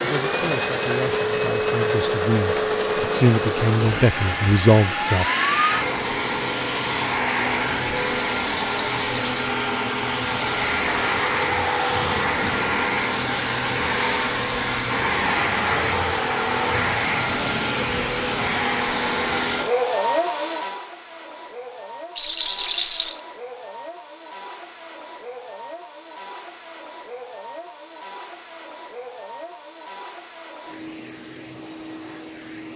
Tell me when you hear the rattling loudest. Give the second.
23 s.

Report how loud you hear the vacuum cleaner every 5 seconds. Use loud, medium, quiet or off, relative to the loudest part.
loud, loud, loud, loud, medium, quiet, quiet.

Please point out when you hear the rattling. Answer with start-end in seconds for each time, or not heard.
8.2-9.4, 22.1-23.2.